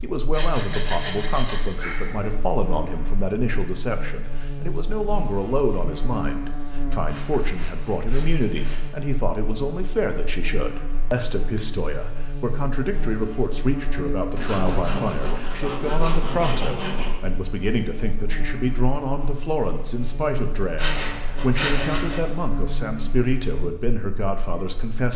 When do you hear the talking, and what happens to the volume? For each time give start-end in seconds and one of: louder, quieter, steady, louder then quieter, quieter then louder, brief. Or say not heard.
0.0-25.1 steady.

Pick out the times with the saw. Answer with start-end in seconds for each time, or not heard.
0.3-2.3, 7.0-8.9, 14.3-17.1, 20.8-22.2.